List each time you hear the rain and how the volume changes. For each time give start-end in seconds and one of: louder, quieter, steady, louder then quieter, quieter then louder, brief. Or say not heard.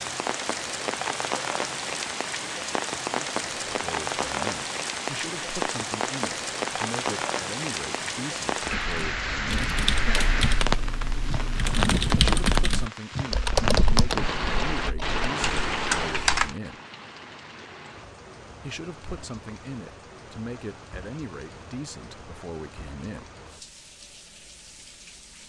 0.0-25.4 quieter.